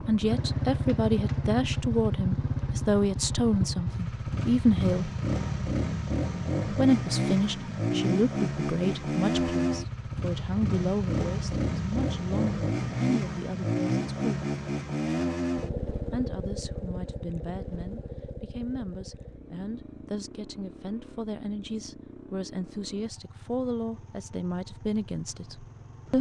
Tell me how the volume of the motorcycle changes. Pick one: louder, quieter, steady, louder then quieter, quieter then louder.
quieter.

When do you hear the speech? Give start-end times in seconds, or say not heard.
0.1-5.1, 6.7-14.3, 16.1-26.1.